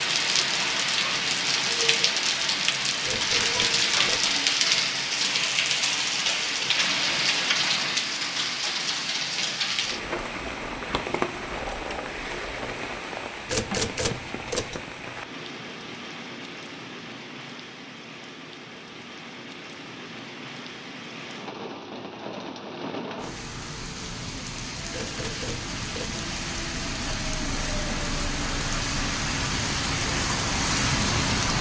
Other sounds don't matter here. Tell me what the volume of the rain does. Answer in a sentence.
The volume of the rain goes down, then up.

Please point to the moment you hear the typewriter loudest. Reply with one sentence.
The volume of the typewriter peaks at 14 seconds.